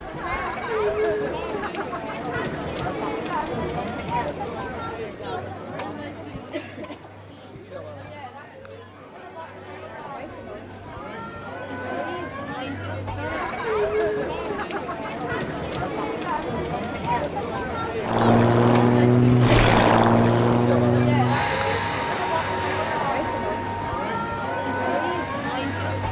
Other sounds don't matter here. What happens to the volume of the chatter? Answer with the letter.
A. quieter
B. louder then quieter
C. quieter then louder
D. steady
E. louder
C.